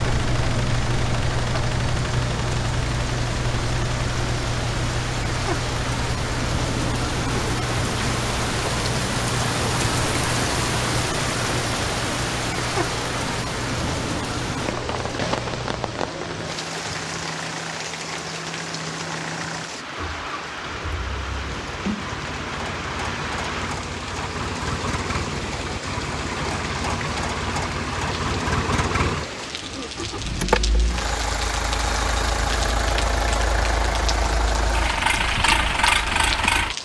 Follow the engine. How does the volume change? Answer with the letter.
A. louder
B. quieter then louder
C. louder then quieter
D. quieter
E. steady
B.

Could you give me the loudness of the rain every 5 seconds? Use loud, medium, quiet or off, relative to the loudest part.
medium, loud, loud, medium, medium, medium, medium, medium.